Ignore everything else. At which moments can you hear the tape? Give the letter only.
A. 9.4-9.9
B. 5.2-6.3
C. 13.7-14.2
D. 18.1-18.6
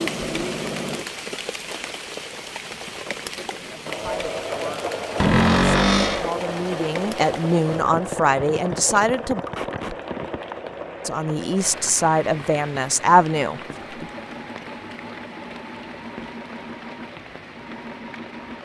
A.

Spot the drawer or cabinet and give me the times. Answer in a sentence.
You can hear the drawer or cabinet from 5.2 to 6.3 s.